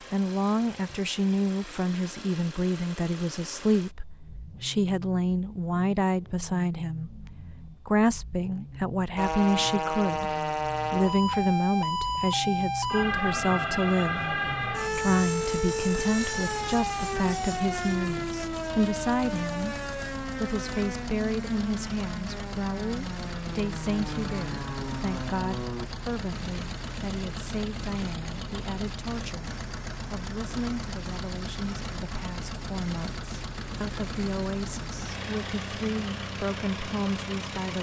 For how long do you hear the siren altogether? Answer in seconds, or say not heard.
17 s.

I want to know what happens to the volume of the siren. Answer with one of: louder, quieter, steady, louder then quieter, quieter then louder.
quieter.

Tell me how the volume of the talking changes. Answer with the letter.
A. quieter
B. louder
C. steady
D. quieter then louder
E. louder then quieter
A.